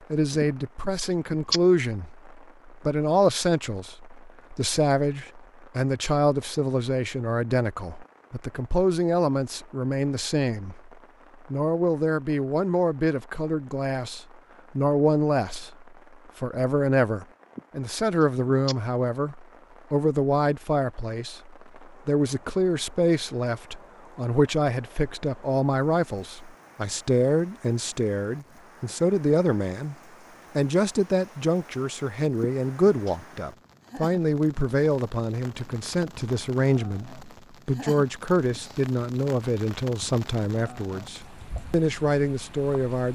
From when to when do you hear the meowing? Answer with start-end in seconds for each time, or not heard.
0.4-1.6, 17.6-18.8, 32.4-33.4.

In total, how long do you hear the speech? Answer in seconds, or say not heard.
42 s.